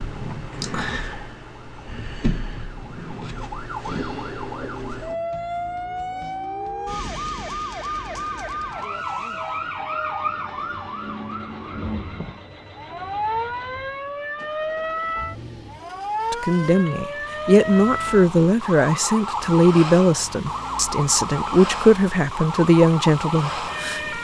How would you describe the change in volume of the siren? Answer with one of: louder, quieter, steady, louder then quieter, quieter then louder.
steady.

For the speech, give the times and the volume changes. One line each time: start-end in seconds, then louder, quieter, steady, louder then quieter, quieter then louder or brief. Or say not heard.
16.3-24.1 steady.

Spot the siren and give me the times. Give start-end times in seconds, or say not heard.
0.0-24.1.